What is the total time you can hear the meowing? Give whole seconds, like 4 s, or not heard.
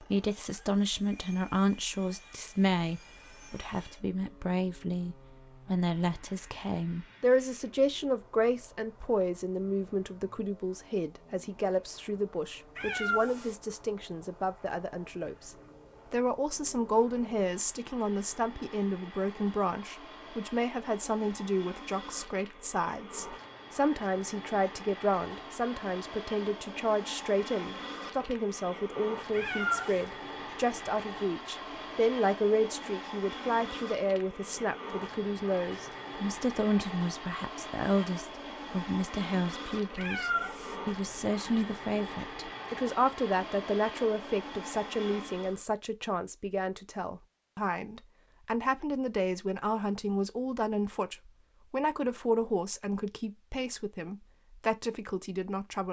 2 s.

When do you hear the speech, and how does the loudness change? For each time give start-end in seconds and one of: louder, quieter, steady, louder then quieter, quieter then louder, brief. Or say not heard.
0.0-55.8 steady.